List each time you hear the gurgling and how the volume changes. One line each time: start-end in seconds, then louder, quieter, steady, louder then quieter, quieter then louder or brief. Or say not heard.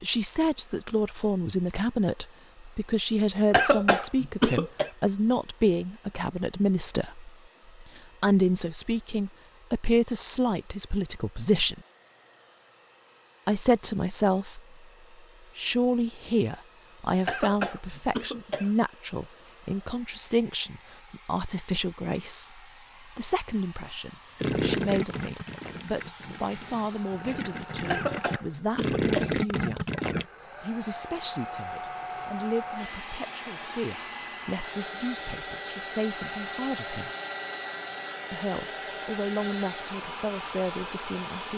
24.4-30.2 quieter then louder.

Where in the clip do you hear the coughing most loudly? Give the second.
4 s.